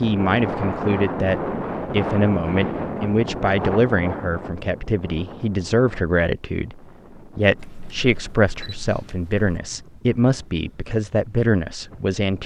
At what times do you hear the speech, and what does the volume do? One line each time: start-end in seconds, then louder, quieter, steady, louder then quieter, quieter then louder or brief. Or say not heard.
0.0-12.4 steady.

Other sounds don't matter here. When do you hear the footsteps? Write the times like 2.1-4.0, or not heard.
not heard.